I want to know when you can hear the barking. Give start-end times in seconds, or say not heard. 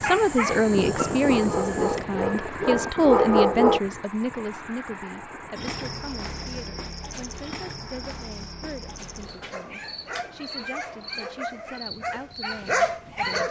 0.0-3.8, 9.5-13.4.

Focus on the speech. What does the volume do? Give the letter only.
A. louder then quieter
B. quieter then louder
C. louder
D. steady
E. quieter
E.